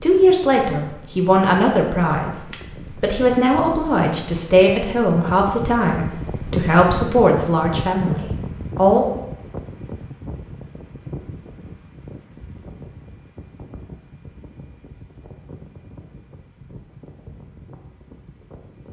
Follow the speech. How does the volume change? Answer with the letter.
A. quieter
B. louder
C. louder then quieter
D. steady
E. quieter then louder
D.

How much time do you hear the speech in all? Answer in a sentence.
You can hear the speech for 9 seconds altogether.